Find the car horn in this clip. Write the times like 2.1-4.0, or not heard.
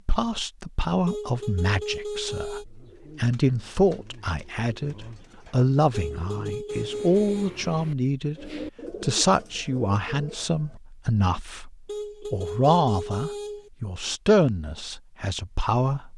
1.1-2.6, 5.9-7.5, 11.8-13.7.